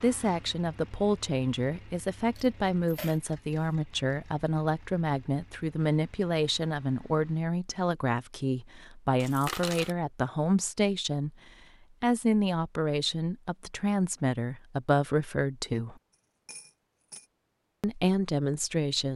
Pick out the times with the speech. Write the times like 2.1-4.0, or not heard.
0.0-11.3, 12.0-15.9, 17.8-19.1.